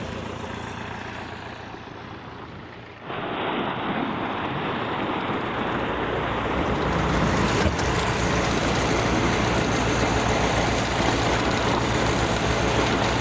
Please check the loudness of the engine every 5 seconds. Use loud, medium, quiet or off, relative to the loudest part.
quiet, loud, loud.